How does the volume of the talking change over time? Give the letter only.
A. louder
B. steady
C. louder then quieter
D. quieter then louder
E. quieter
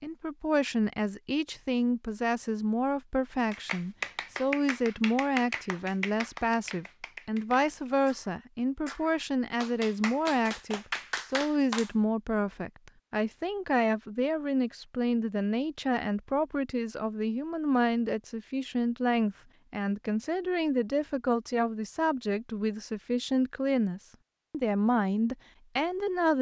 B.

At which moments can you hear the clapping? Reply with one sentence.
The clapping can be heard from 3.5 to 11.9 s.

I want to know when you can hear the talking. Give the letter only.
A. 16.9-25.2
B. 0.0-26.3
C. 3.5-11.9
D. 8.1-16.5
B.